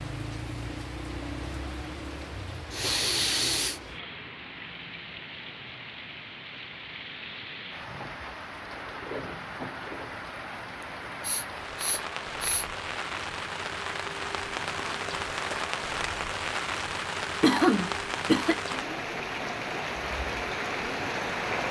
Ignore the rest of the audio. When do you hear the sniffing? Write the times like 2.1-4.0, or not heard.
2.7-3.8, 10.8-12.7, 17.4-18.6.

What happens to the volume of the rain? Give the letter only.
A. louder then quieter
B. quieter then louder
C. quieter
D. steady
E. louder
E.